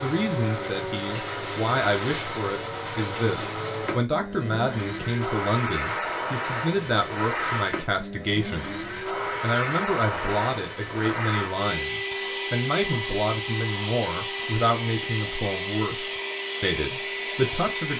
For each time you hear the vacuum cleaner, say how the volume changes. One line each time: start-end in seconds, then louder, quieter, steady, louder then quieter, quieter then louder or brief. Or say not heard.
0.0-17.9 steady.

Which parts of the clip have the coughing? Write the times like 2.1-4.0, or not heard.
not heard.